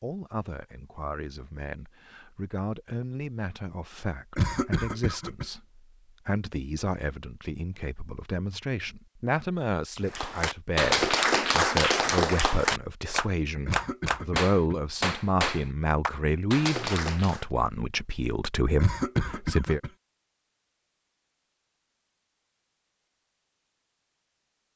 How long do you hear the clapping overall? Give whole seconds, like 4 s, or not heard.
7 s.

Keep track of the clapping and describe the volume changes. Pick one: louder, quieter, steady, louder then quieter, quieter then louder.
quieter.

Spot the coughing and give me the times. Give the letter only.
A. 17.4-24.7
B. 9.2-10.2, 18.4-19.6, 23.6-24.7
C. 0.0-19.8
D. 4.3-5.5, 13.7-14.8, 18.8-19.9
D.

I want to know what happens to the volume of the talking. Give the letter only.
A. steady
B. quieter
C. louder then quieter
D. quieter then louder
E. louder
E.